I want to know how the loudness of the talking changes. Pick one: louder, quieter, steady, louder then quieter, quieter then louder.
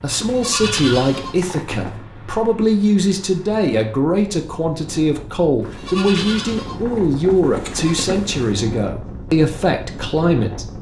steady.